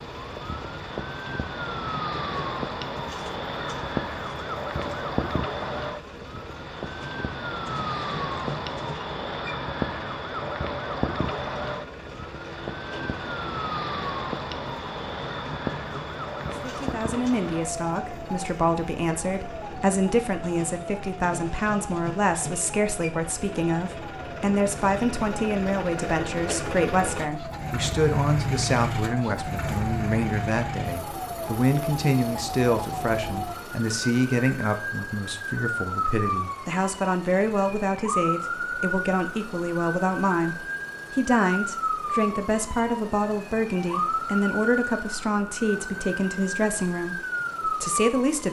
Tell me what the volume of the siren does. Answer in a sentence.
The volume of the siren goes down, then up.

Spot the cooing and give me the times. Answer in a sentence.
The cooing can't be heard in this clip.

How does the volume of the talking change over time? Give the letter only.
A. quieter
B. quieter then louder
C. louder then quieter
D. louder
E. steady
E.